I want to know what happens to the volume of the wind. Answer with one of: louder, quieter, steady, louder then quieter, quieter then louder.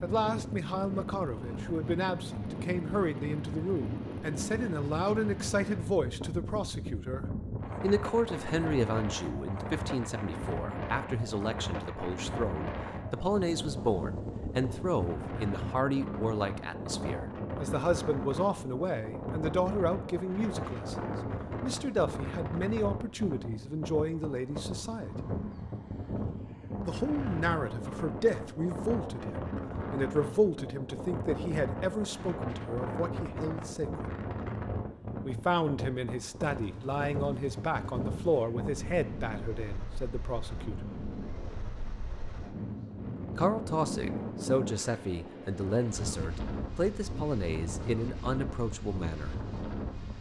steady.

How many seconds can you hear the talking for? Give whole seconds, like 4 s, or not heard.
44 s.